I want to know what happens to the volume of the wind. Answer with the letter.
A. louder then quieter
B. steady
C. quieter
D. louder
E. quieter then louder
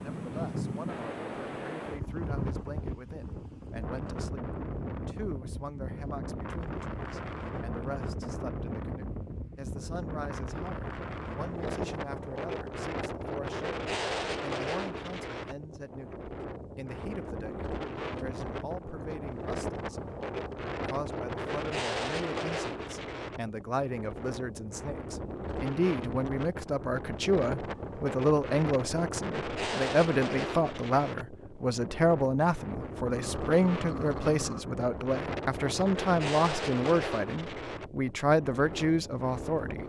B.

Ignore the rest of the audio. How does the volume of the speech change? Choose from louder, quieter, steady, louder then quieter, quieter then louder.
louder.